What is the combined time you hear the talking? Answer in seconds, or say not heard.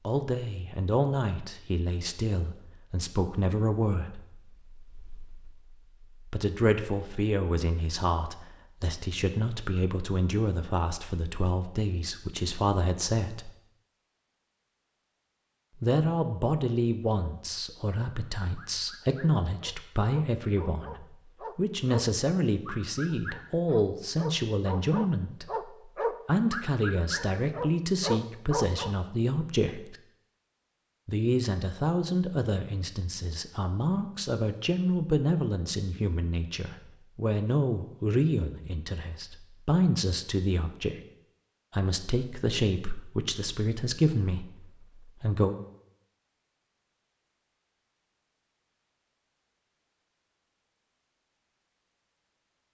41 s.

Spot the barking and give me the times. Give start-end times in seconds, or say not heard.
18.6-28.9.